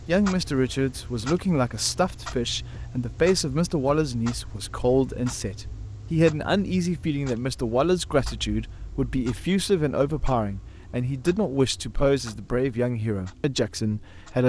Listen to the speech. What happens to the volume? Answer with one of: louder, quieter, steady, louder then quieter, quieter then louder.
steady.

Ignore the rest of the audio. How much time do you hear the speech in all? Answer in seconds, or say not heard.
14 s.